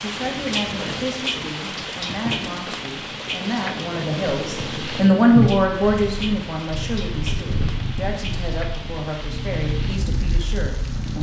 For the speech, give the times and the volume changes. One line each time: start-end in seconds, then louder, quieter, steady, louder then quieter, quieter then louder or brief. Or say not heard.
0.0-11.1 louder then quieter.